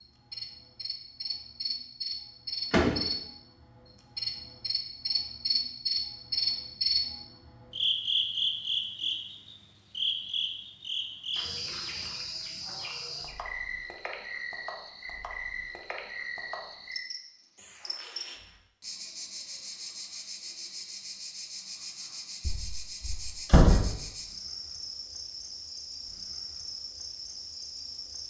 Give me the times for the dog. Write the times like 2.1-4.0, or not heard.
not heard.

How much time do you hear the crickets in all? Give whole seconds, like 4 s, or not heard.
28 s.